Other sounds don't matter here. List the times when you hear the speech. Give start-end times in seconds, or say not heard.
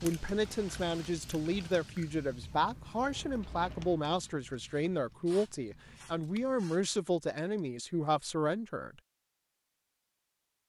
0.0-8.9.